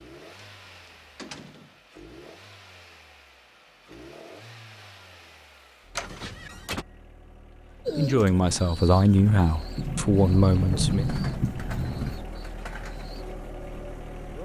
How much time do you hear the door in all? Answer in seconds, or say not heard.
5 s.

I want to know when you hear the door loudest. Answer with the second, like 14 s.
11 s.